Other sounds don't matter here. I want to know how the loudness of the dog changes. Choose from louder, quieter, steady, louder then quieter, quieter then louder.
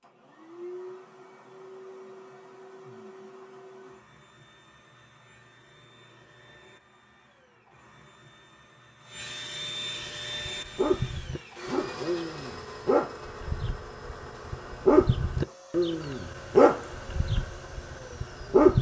louder then quieter.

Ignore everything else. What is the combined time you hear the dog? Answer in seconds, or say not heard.
8 s.